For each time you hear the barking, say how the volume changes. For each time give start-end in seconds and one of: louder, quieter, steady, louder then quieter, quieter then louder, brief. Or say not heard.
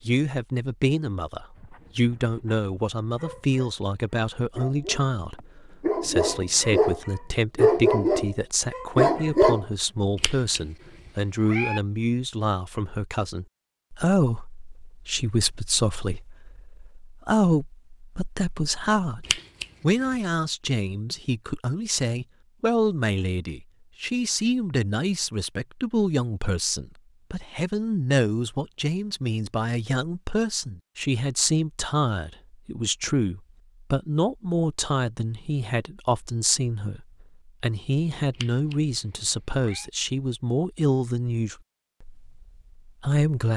1.6-9.7 louder.